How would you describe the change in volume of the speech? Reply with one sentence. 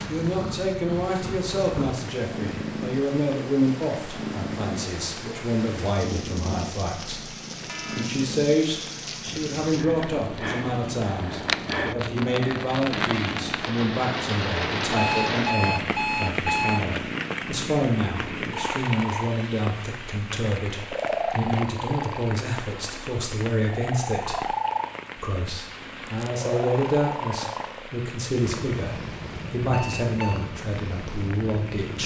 The volume of the speech stays about the same.